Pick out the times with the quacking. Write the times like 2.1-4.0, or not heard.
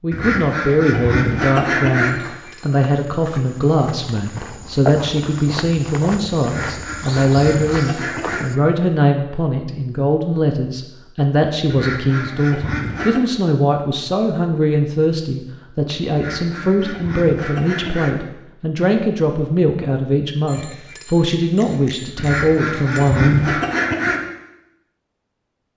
0.1-2.1, 6.4-8.4, 11.7-13.2, 16.1-18.1, 22.1-24.2.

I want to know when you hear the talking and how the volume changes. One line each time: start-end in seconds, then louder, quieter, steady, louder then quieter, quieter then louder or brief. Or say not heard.
0.0-23.6 steady.